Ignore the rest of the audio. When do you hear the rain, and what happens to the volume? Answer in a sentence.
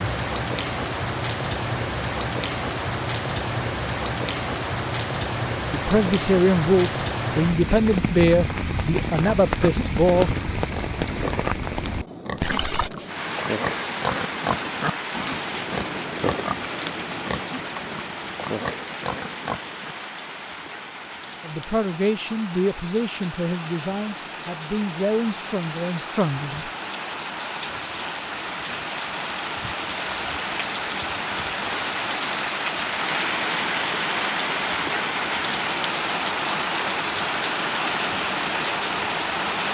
The rain can be heard from 0.0 to 39.7 s, getting quieter then louder.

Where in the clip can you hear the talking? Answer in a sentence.
You can hear the talking from 5.7 to 10.3 s and from 21.4 to 26.7 s.